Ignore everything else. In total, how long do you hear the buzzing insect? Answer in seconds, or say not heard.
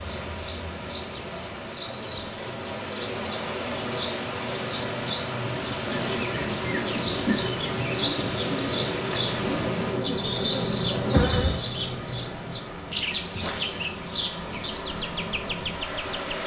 6 s.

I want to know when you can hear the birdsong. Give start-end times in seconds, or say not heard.
0.0-16.4.